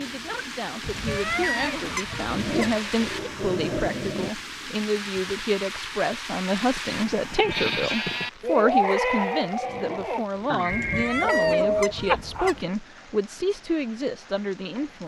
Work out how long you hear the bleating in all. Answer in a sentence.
You can hear the bleating for 6 seconds altogether.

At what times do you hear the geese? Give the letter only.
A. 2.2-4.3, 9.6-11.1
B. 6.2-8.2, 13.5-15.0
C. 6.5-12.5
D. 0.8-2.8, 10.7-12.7
D.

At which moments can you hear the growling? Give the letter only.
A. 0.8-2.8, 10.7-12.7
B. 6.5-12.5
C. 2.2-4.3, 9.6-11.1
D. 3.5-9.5
C.